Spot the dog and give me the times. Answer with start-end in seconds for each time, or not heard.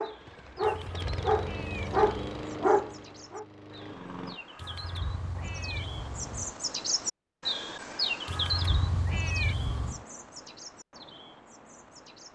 0.0-3.5.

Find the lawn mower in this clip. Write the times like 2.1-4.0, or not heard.
0.0-4.4.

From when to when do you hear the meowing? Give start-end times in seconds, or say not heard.
0.6-2.2, 4.5-6.5, 8.2-10.1.